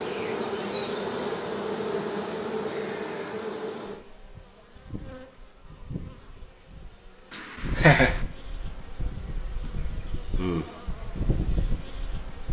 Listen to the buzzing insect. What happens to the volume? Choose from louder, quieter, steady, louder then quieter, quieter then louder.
quieter then louder.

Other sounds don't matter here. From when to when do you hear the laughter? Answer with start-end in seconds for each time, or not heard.
7.3-8.2.